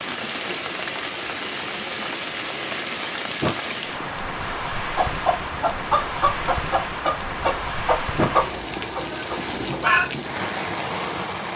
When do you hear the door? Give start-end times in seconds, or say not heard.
3.4-4.1, 8.2-8.8.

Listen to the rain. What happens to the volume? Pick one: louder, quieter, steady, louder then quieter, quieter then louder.
steady.